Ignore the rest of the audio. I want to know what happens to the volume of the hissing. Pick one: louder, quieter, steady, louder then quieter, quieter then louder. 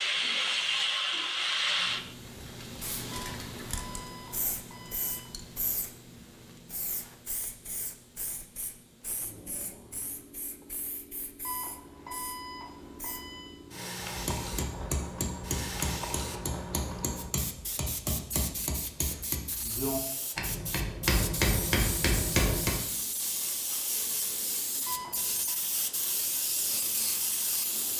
quieter then louder.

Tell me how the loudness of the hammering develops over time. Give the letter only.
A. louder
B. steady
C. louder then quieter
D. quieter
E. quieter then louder
A.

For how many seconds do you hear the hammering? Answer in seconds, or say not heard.
9 s.